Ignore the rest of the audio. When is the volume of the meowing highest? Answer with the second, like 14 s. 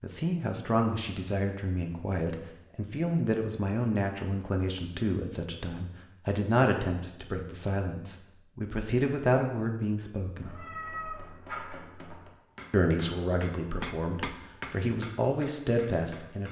11 s.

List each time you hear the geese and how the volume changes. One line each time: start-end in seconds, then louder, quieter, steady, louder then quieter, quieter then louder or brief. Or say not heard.
not heard.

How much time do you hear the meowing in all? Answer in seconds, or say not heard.
2 s.